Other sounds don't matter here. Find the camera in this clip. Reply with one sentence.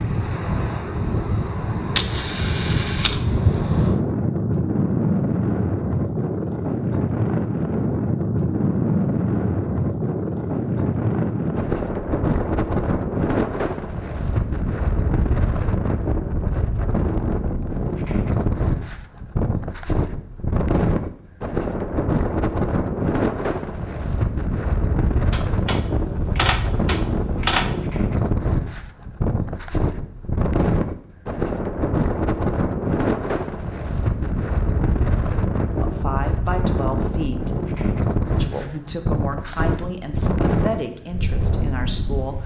You can hear the camera from 1.9 to 3.2 s and from 25.3 to 27.7 s.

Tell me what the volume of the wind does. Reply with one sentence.
The loudness of the wind stays about the same.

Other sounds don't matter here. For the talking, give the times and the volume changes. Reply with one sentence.
You can hear the talking briefly from 35.8 to 37.5 s; and from 38.3 to 42.4 s, at a steady volume.